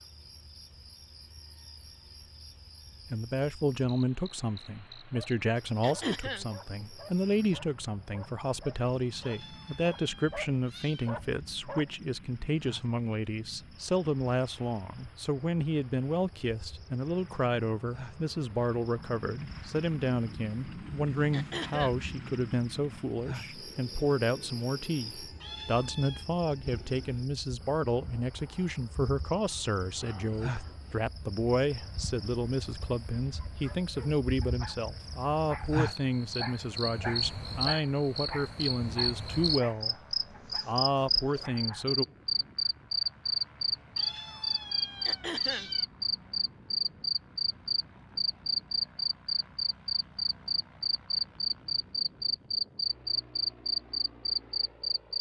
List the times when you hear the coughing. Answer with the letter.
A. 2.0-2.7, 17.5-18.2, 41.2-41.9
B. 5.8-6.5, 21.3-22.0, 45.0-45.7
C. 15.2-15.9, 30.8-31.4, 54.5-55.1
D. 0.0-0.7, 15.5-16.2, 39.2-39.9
B.